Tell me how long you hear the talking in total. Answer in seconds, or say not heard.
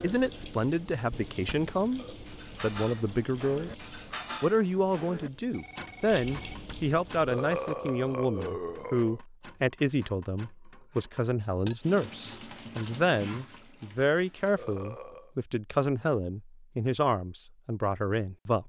18 s.